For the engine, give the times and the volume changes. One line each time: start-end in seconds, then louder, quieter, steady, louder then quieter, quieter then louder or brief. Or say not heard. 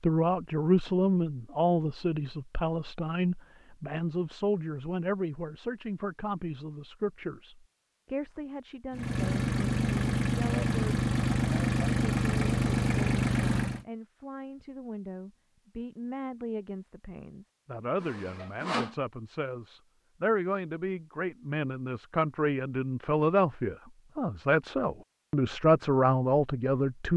8.9-13.8 steady.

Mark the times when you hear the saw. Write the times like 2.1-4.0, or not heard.
18.0-18.9.